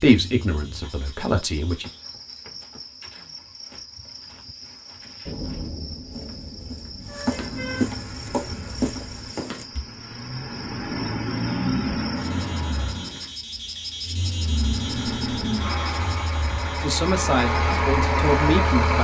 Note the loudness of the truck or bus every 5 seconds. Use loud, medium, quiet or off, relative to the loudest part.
off, quiet, loud, loud.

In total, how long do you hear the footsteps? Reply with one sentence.
The footsteps can be heard for 9 seconds in total.